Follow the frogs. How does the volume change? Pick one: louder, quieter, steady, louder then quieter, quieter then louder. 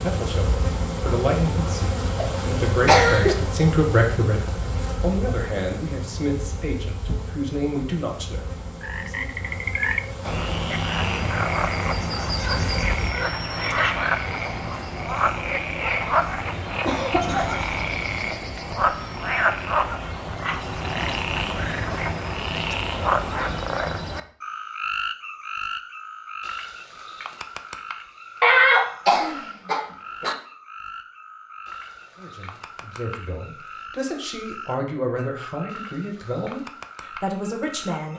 quieter.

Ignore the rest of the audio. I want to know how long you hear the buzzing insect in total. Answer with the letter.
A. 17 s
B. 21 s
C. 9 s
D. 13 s
D.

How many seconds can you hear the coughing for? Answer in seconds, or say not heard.
5 s.